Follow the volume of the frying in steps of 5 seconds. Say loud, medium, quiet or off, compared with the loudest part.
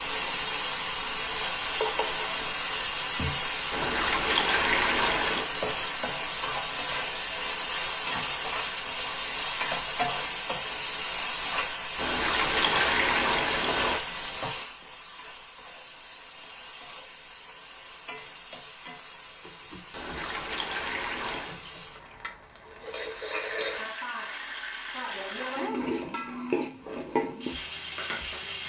loud, loud, loud, quiet, medium, loud.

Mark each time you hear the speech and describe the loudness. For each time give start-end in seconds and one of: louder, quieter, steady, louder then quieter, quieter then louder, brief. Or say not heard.
not heard.